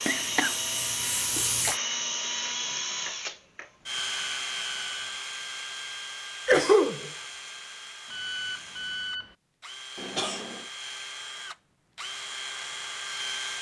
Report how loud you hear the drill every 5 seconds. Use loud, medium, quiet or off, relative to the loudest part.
loud, medium, medium.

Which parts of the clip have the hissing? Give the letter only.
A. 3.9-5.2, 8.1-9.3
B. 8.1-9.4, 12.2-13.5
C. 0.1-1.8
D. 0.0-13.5
C.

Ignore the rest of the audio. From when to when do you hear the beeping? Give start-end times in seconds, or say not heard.
3.9-5.2, 8.1-9.3.